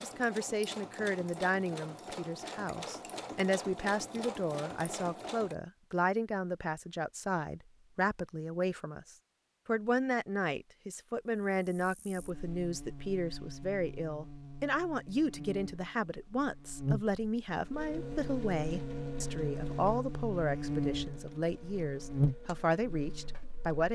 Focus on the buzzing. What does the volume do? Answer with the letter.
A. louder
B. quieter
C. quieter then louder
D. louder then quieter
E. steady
A.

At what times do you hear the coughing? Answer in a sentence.
You can't hear the coughing here.